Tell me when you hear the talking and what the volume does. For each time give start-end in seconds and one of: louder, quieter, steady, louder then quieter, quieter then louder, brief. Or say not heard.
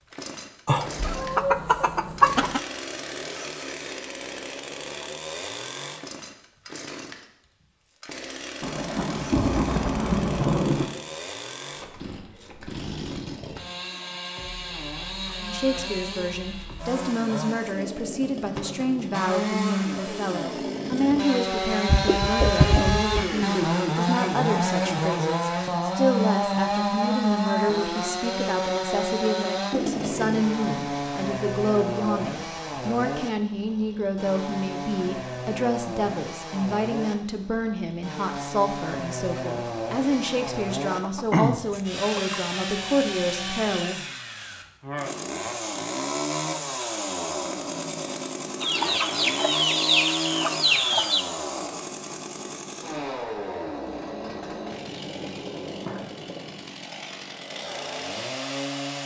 15.4-44.0 steady.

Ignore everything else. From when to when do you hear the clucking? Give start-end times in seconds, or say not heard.
0.7-2.6, 21.9-23.2, 40.9-42.4, 48.6-51.2.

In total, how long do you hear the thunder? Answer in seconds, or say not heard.
2 s.